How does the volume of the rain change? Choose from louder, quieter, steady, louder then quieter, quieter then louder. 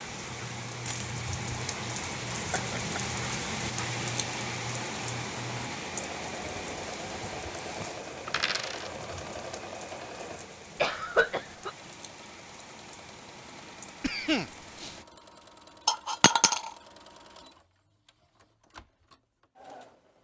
quieter.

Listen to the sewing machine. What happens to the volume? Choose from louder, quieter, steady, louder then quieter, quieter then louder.
quieter.